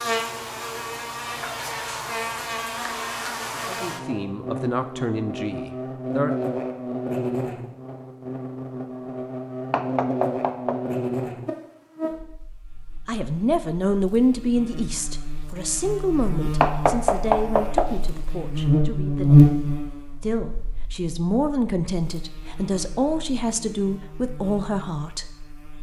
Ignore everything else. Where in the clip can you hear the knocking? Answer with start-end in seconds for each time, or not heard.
9.7-10.8, 16.6-17.9.